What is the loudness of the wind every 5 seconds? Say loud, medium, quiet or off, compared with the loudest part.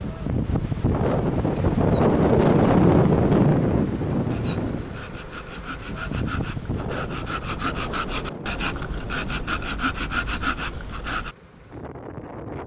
loud, quiet, quiet.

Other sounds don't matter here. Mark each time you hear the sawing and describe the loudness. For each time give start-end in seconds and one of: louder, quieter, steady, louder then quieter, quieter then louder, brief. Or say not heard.
4.3-11.3 louder.